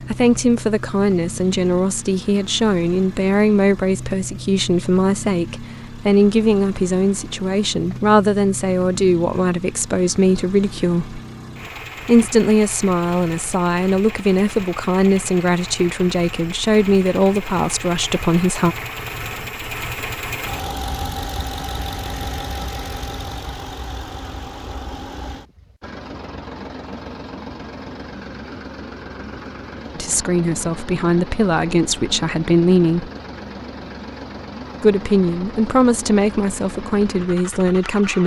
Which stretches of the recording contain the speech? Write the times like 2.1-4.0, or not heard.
0.1-11.2, 12.0-18.8, 29.9-33.1, 34.8-38.2.